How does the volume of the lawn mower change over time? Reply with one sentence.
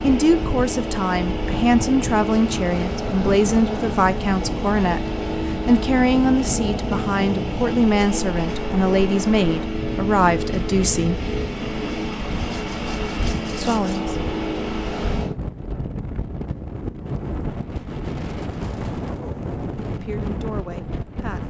The loudness of the lawn mower stays about the same.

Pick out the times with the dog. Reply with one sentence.
You can't hear the dog here.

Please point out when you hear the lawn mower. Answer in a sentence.
You can hear the lawn mower from 0.0 to 15.3 s.